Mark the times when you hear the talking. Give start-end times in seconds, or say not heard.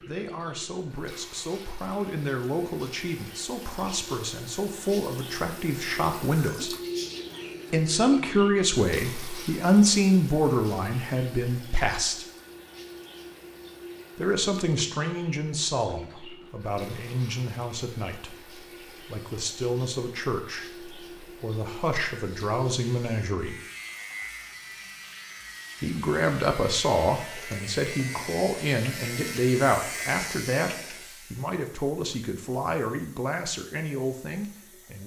0.0-6.8, 7.7-12.2, 14.2-23.6, 25.8-35.0.